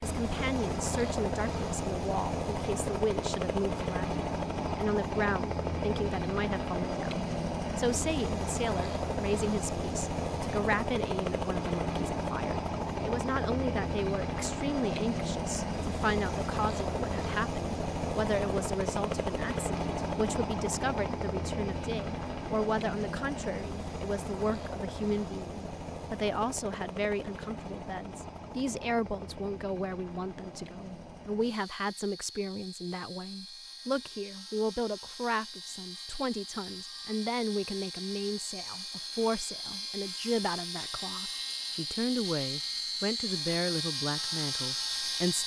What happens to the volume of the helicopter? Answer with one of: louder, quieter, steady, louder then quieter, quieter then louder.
quieter then louder.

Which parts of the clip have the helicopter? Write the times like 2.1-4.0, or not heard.
0.0-45.4.